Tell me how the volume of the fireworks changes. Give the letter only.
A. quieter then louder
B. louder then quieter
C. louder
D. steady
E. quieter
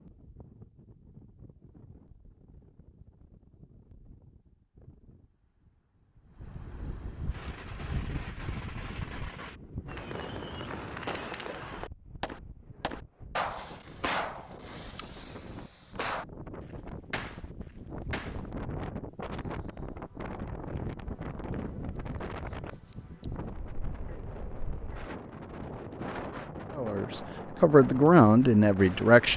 C.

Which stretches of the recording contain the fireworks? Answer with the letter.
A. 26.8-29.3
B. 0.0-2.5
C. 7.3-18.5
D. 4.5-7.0
C.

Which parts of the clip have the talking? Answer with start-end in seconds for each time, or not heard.
26.8-29.3.